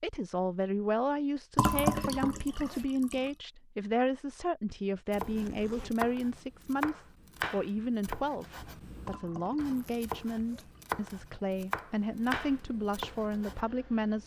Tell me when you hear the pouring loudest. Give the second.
2 s.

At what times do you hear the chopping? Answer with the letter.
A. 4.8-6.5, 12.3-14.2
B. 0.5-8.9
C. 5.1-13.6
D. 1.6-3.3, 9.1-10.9
C.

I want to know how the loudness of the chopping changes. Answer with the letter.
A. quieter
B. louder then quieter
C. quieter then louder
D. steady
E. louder
C.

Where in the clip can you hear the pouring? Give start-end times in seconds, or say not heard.
1.6-3.3, 9.1-10.9.